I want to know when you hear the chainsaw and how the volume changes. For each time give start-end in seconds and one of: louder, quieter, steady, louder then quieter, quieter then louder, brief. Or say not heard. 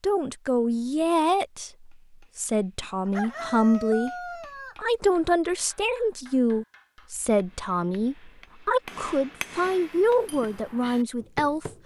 not heard.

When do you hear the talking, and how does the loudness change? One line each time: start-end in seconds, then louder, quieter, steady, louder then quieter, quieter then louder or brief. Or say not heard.
0.0-4.1 quieter then louder
4.8-11.7 steady.